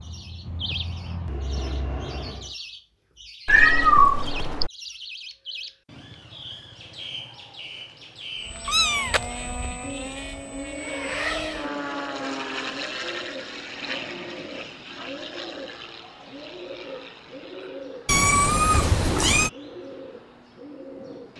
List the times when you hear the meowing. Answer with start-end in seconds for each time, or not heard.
3.5-4.7, 8.7-9.2, 18.1-19.5.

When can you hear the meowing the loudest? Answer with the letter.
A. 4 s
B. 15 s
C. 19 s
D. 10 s
A.